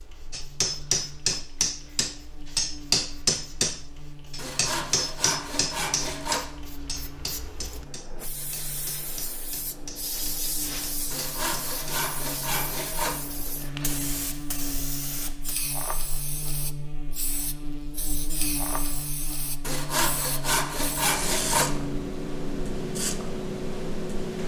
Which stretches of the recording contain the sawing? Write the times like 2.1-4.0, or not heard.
4.3-6.4, 11.1-13.1, 19.6-21.6.